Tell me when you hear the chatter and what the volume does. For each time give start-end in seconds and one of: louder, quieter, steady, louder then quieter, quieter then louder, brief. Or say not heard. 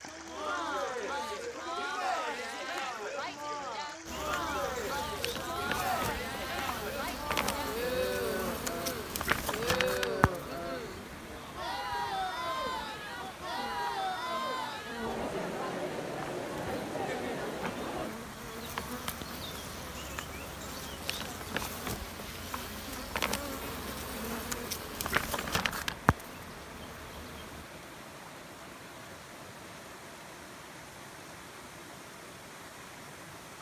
0.1-18.1 steady.